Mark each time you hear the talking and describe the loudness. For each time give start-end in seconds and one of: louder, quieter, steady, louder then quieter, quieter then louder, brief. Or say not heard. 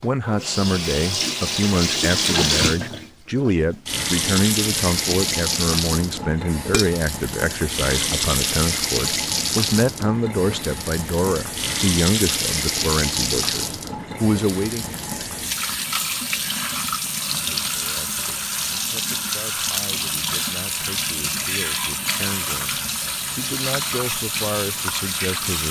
0.0-14.9 steady
17.4-25.6 louder.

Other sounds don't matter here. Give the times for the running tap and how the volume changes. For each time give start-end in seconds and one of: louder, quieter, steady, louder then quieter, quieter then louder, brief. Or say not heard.
0.0-25.6 steady.